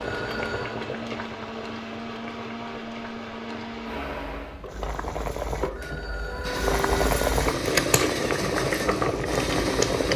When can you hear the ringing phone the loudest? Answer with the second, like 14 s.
7 s.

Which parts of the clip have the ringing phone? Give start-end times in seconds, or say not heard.
0.0-0.8, 5.8-7.2.